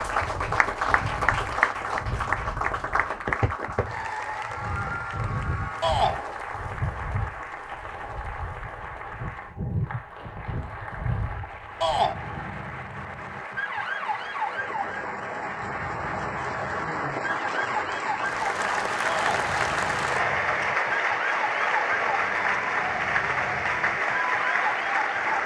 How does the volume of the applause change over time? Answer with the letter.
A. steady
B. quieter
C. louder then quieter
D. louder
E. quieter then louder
E.